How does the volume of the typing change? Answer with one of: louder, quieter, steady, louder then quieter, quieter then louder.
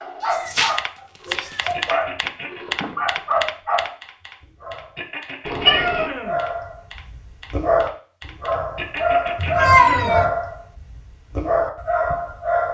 quieter.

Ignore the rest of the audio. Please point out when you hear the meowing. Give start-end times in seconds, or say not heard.
0.2-0.7, 1.3-1.8, 5.5-6.1, 9.3-10.3.